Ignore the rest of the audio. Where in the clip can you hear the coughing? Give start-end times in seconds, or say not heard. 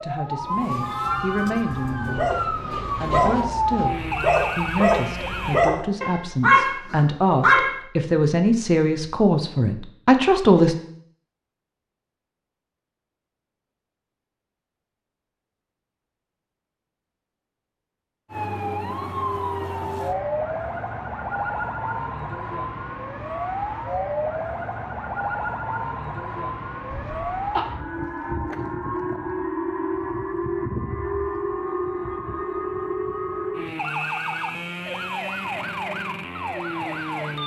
26.9-27.6.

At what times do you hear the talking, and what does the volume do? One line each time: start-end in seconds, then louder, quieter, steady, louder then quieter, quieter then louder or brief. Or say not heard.
0.0-2.3 brief
3.0-10.8 louder.